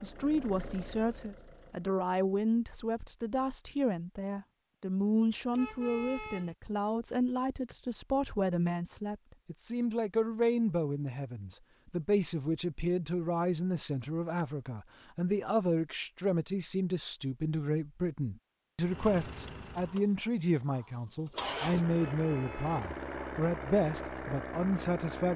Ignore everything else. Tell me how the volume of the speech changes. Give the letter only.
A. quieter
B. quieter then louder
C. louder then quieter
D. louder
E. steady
E.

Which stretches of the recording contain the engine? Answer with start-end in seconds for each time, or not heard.
0.0-1.9, 18.8-25.3.